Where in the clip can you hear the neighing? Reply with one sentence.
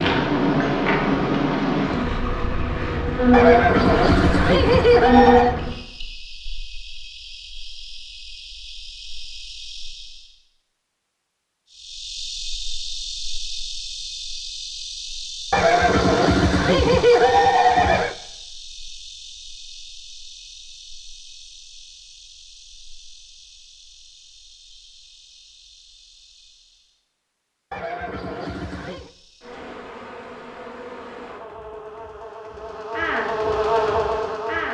The neighing can be heard from 3.3 to 5.5 s, from 15.5 to 18.1 s and from 27.7 to 29.1 s.